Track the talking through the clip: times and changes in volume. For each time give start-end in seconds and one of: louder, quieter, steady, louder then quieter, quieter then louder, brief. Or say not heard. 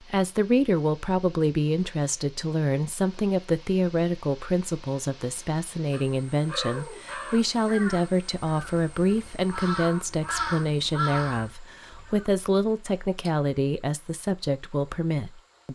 0.1-15.7 steady.